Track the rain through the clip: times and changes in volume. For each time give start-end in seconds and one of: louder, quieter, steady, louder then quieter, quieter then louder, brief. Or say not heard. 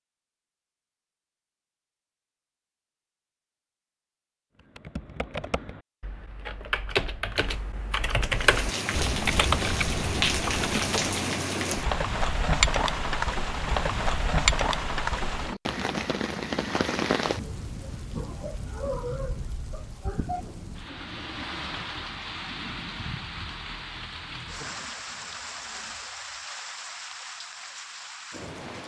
8.3-28.8 quieter.